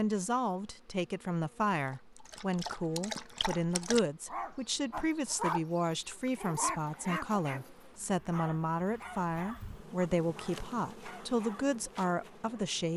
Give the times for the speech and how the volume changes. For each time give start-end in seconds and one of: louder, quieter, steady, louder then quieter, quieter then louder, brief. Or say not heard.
0.0-12.9 steady.